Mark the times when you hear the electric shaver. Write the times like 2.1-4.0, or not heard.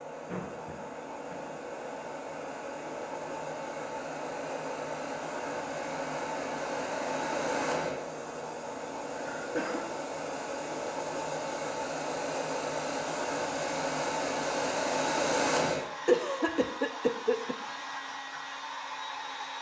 not heard.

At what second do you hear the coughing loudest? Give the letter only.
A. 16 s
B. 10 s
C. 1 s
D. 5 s
A.